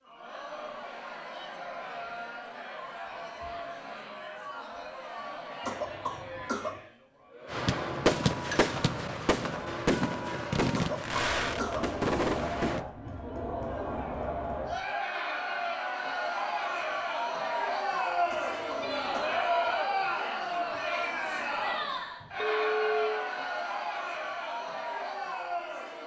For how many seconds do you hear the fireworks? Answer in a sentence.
You can hear the fireworks for 5 seconds altogether.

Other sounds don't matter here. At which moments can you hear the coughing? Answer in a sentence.
The coughing can be heard from 5.6 to 6.8 s, from 10.7 to 11.9 s and from 18.2 to 19.4 s.